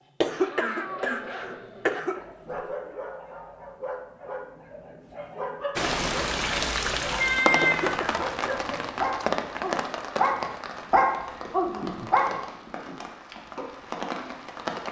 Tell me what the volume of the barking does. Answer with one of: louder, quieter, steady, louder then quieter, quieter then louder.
louder.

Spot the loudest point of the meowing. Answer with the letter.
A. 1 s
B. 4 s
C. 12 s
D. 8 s
D.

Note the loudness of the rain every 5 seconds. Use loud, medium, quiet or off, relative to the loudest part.
off, loud, medium.